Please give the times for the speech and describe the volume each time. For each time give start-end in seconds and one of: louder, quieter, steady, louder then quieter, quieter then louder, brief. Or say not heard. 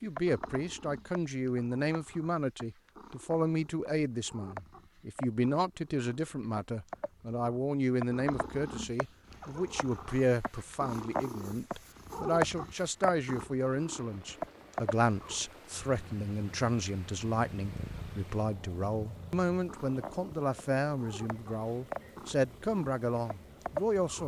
0.0-24.2 steady.